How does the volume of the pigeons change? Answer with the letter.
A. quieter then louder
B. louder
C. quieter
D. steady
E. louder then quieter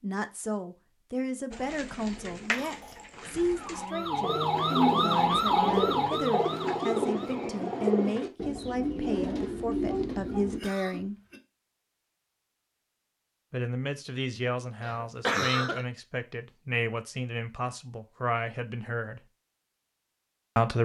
B.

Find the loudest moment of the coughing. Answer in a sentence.
The loudest moment of the coughing is at 15 seconds.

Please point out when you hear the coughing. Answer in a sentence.
The coughing can be heard from 2.5 to 3.1 s, from 10.3 to 11.4 s and from 14.8 to 15.8 s.